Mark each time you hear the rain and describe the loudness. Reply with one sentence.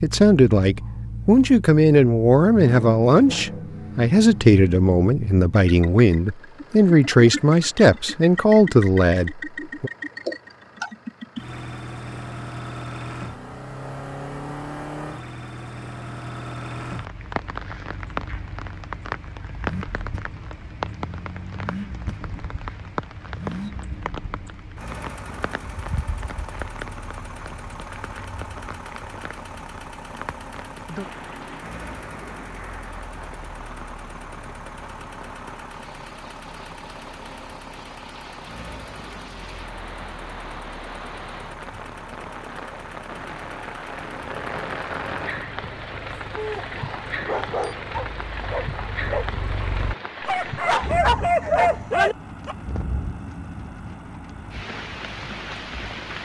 The rain can be heard from 16.9 to 56.2 s, getting quieter then louder.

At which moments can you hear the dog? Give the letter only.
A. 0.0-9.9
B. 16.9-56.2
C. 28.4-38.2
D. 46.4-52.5
D.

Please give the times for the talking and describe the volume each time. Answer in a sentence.
You can hear the talking from 0.0 to 9.9 s, at a steady volume.